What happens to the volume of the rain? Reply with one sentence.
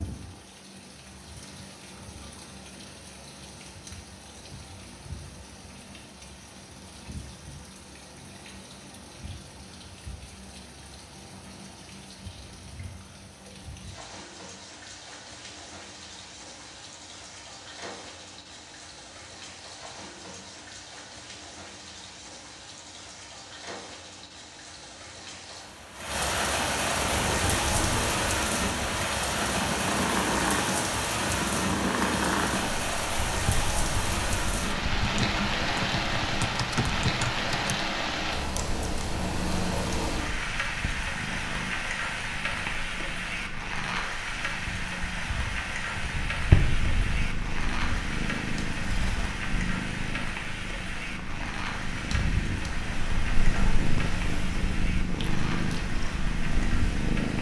The loudness of the rain goes up, then down.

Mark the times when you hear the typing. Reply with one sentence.
The typing can be heard from 35.0 to 37.8 s.